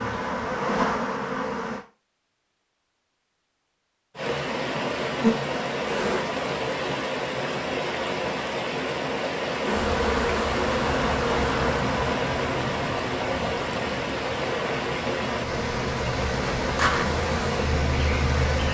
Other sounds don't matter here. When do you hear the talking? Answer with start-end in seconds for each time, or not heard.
not heard.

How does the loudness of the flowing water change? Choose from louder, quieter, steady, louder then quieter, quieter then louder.
steady.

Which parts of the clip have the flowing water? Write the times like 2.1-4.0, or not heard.
4.2-18.7.